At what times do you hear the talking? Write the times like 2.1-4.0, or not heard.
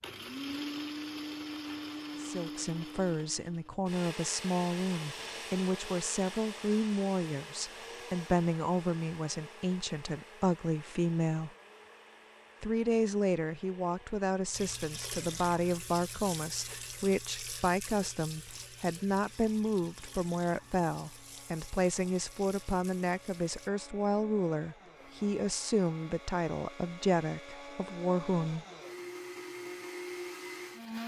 2.1-11.5, 12.6-28.6.